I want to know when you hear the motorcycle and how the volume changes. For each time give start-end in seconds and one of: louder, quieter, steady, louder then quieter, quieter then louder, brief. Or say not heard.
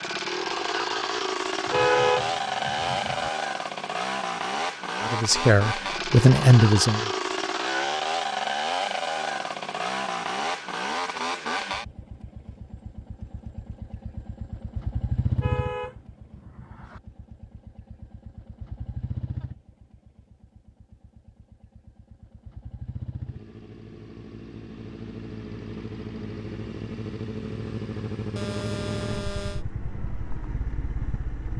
0.0-31.5 quieter then louder.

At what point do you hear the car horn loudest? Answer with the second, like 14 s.
2 s.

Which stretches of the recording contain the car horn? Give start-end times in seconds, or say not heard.
1.6-3.3, 15.3-17.0, 28.4-29.6.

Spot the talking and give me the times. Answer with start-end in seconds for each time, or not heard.
5.0-7.1.